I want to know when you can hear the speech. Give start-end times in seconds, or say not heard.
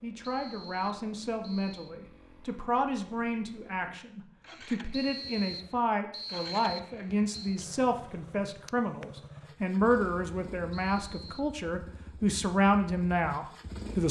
0.0-14.0.